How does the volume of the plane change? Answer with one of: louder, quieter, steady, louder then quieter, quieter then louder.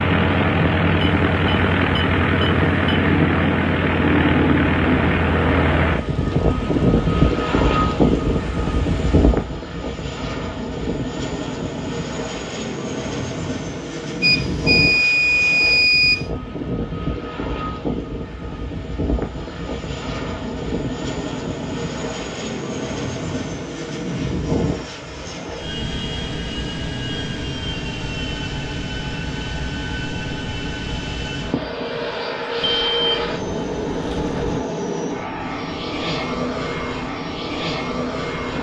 quieter.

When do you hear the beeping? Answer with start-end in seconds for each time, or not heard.
1.0-3.0, 14.2-16.2, 32.6-34.6.